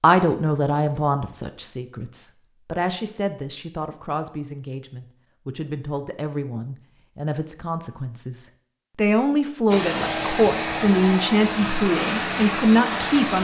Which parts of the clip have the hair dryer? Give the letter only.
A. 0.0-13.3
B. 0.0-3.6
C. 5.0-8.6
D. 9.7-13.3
D.